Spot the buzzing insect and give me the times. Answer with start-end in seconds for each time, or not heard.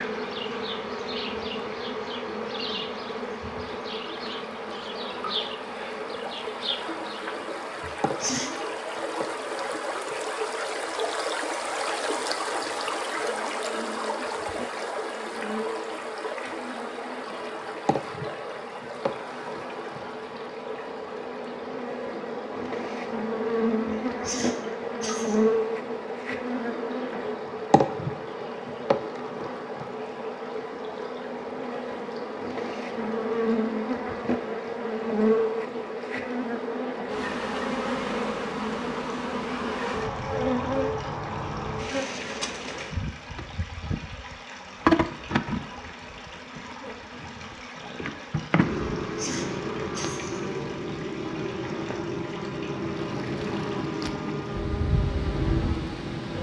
0.0-56.3.